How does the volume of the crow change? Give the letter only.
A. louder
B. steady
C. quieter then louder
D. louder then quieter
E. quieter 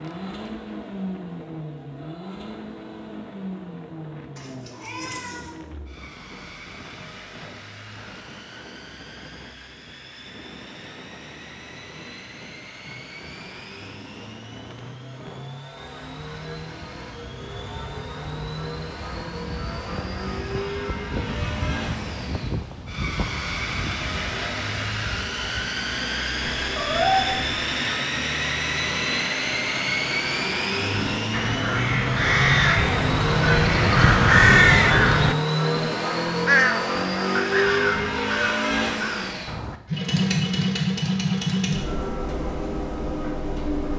D.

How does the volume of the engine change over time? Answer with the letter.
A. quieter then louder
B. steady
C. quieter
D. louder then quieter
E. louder
E.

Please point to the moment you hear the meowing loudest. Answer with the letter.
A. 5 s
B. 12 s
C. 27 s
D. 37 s
C.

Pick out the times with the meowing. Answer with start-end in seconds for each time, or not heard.
4.3-5.5, 26.4-27.6.